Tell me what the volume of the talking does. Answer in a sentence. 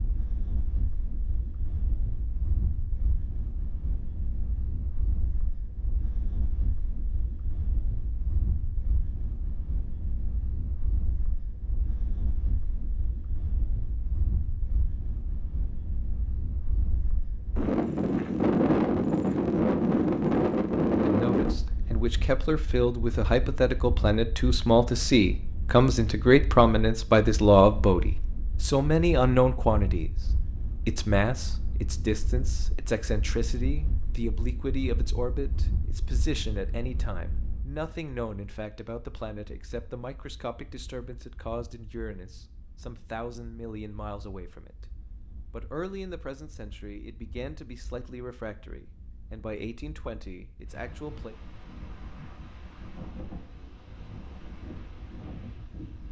The volume of the talking goes down.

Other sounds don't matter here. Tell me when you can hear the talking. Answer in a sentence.
The talking can be heard from 21.0 to 30.1 s, from 30.8 to 44.9 s and from 45.5 to 51.4 s.